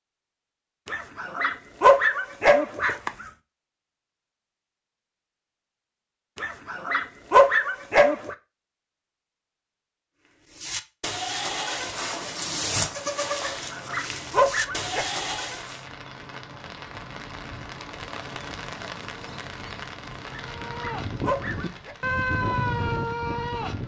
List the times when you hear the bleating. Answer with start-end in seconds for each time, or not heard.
10.2-15.8, 20.4-23.8.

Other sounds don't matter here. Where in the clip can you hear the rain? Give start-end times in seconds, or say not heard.
11.7-23.8.